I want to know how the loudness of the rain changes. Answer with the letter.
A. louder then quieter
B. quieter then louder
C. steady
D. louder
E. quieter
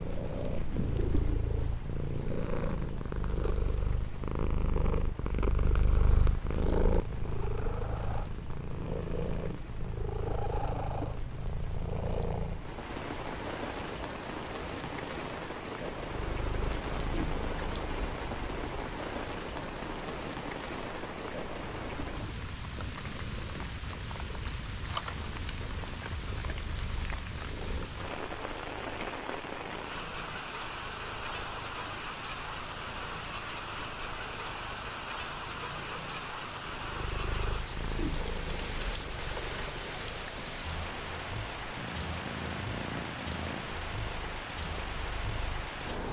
D.